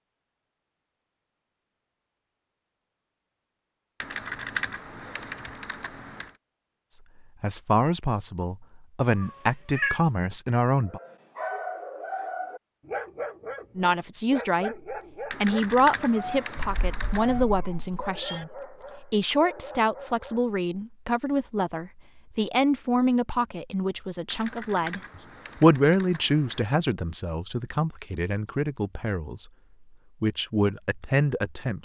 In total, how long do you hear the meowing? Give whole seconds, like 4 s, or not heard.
3 s.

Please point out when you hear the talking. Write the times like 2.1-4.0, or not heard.
7.4-11.0, 13.8-29.5, 30.2-31.8.